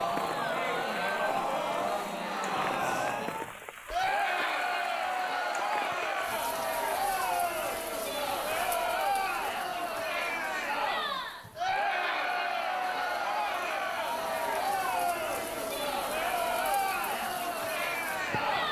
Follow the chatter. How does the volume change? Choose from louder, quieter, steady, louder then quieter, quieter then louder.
steady.